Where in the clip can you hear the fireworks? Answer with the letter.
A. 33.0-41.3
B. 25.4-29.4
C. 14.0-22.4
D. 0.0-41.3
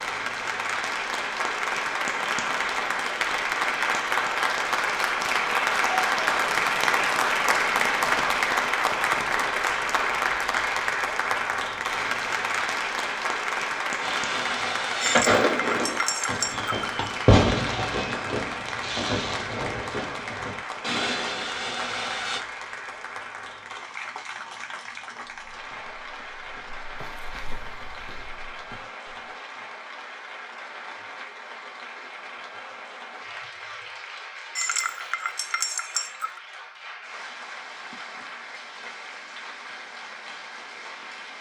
C.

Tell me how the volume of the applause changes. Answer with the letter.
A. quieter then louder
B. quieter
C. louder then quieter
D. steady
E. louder
B.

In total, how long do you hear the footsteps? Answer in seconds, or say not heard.
4 s.